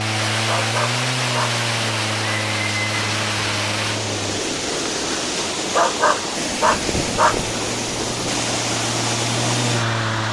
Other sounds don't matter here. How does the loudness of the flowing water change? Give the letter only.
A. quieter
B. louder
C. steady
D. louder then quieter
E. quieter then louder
C.